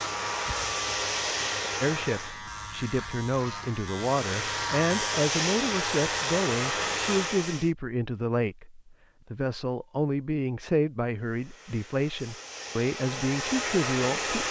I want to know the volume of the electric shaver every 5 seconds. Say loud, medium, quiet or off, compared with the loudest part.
loud, loud, off.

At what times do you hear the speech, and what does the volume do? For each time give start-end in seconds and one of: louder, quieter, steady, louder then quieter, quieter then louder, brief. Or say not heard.
1.8-14.4 steady.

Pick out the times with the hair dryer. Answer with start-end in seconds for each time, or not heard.
0.0-2.4, 4.0-7.7, 11.2-14.4.